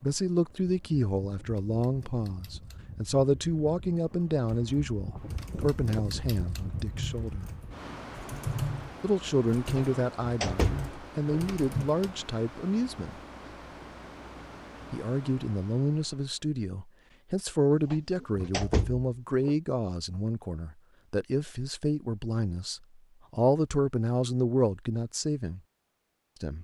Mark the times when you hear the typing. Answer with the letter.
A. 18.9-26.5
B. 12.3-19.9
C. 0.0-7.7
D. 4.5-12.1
D.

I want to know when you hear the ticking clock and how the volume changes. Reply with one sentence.
You can't hear the ticking clock here.